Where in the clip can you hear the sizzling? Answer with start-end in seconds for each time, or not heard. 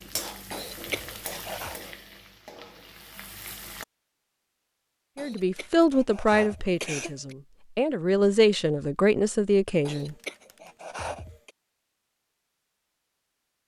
0.0-3.9.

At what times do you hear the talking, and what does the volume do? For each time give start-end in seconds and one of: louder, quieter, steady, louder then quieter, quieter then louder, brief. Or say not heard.
5.2-10.2 quieter then louder.